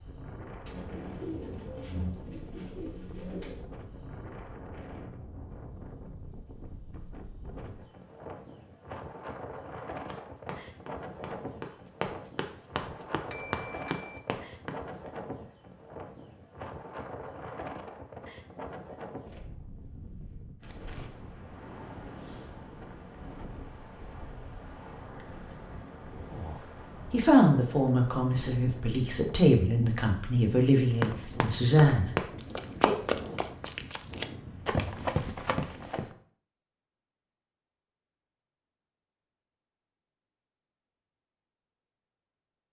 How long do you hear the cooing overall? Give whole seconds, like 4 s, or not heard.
3 s.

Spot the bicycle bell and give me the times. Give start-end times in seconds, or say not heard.
13.3-14.2.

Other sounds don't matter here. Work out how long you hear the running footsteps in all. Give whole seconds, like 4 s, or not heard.
10 s.